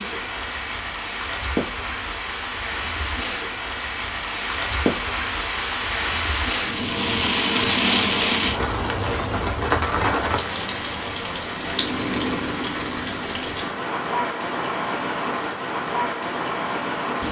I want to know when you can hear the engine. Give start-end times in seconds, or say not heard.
11.6-13.8.